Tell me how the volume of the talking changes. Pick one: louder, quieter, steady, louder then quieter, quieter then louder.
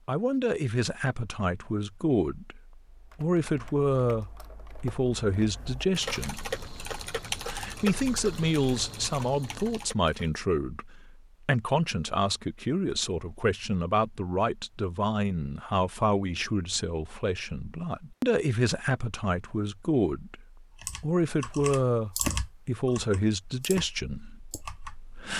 steady.